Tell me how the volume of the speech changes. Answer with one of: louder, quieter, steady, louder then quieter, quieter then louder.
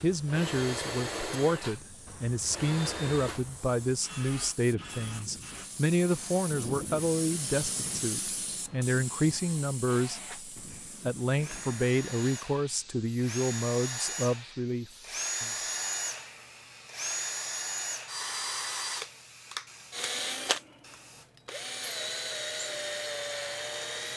steady.